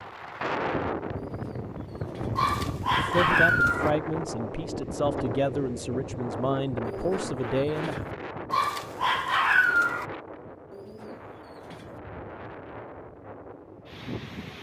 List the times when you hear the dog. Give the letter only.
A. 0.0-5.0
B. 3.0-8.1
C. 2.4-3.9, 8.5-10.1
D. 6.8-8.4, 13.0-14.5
C.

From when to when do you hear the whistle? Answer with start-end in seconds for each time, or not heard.
not heard.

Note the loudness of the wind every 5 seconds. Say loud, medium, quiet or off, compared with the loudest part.
loud, loud, medium.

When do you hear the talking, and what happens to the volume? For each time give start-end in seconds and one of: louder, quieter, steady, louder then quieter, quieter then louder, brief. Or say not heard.
3.0-8.1 steady.